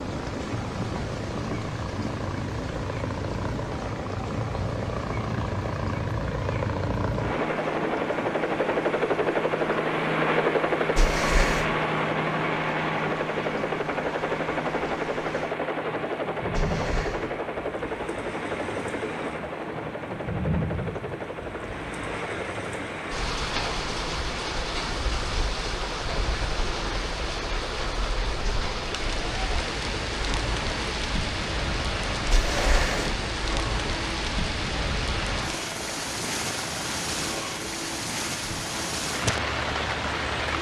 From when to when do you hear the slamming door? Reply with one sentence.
You can hear the slamming door from 10.9 to 11.7 s, from 16.5 to 17.2 s and from 32.3 to 33.1 s.